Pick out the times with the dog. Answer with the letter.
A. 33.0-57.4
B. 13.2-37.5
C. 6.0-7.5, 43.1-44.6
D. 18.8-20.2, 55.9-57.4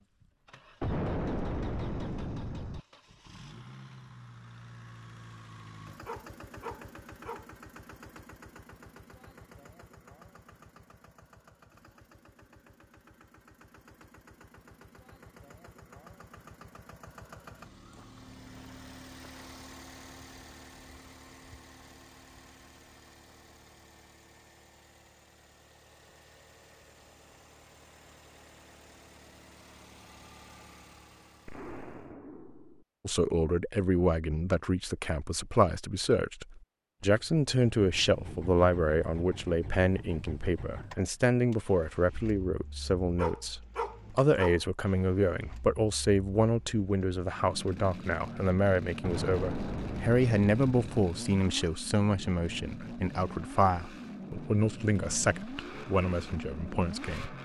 C.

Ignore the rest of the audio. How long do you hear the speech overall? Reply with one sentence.
You can hear the speech for 24 seconds altogether.